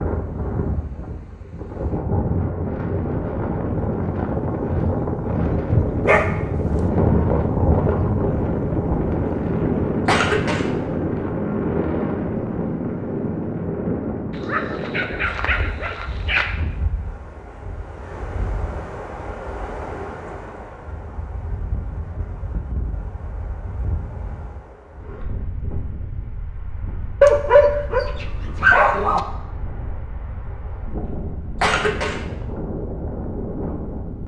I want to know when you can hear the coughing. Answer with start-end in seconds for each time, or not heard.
10.1-10.7, 31.6-32.2.